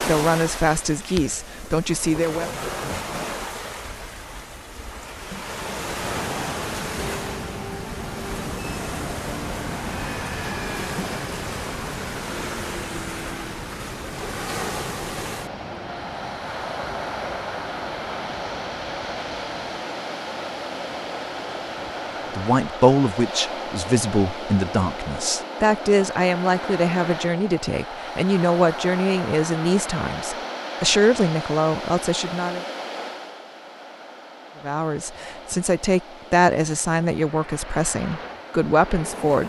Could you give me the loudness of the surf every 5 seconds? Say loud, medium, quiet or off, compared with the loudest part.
loud, loud, loud, loud, loud, loud, loud, medium.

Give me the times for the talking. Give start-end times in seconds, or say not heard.
0.0-2.5, 22.4-32.6, 34.6-39.4.